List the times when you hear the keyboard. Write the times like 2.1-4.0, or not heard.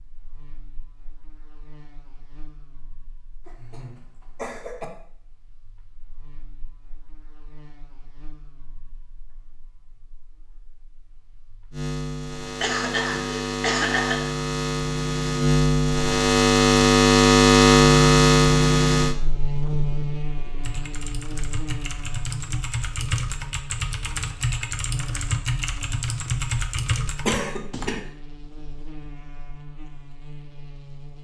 20.6-27.9.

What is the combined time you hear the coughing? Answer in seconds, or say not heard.
4 s.